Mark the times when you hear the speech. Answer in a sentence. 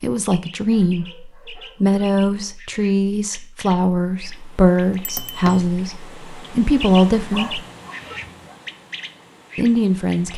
You can hear the speech from 0.0 to 7.6 s and from 9.6 to 10.3 s.